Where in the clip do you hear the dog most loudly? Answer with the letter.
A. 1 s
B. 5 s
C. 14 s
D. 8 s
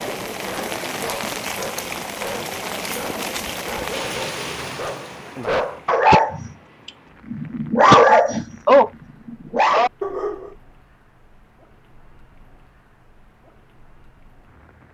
D.